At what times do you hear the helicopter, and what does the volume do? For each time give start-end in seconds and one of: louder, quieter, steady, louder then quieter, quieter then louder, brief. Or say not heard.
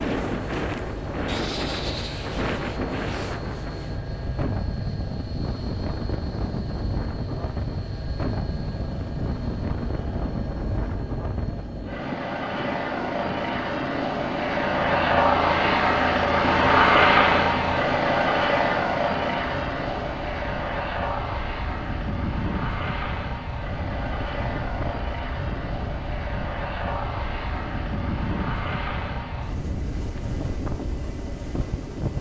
0.2-32.1 louder then quieter.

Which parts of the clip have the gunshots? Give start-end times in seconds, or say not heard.
not heard.